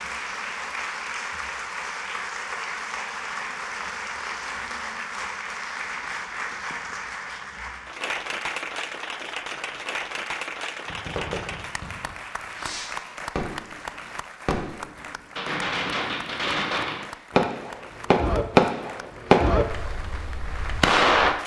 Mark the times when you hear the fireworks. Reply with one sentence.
You can hear the fireworks from 10.8 to 21.4 s.